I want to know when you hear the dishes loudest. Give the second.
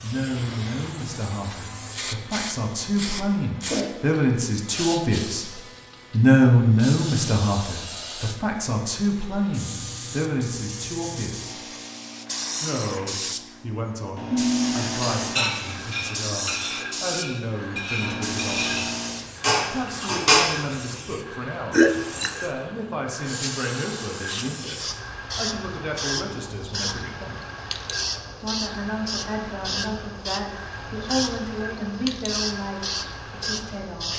20 s.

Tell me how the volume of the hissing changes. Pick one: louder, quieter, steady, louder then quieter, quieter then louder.
steady.